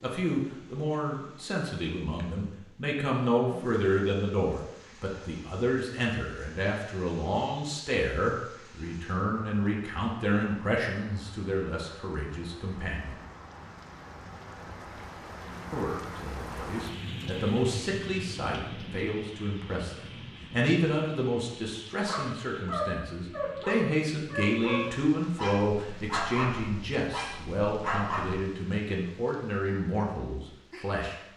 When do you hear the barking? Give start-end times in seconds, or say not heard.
22.0-28.4.